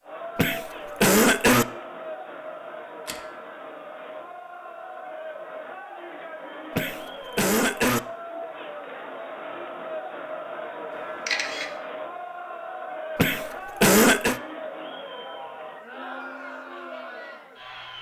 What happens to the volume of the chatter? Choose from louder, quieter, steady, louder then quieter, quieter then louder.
steady.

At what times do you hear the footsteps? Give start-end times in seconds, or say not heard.
not heard.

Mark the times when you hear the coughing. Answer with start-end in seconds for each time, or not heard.
0.3-1.6, 6.8-8.0, 13.2-14.4.